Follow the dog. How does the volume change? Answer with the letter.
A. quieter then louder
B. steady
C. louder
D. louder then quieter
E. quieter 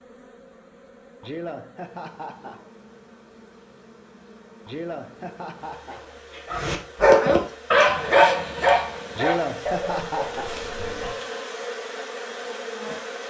E.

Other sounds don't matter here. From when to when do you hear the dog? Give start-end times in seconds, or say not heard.
6.5-11.2.